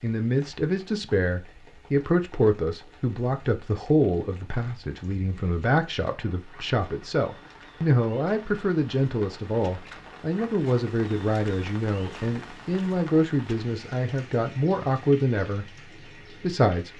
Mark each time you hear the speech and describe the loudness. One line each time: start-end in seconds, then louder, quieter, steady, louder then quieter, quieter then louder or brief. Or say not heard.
0.0-15.7 steady
16.4-16.9 brief.